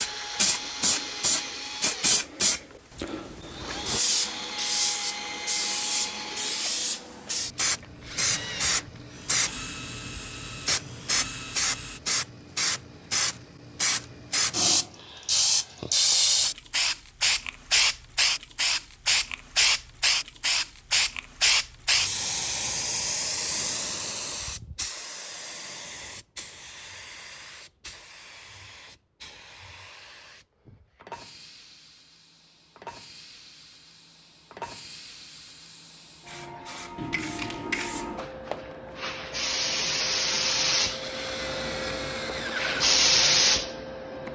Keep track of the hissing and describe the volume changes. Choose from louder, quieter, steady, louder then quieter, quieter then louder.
quieter then louder.